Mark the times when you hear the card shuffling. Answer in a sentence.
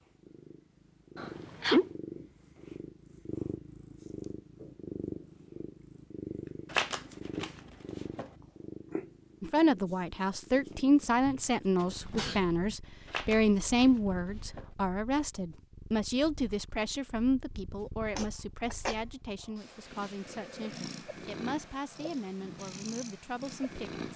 The card shuffling can be heard from 6.7 to 8.3 s and from 13.1 to 14.7 s.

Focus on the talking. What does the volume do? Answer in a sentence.
The volume of the talking goes down.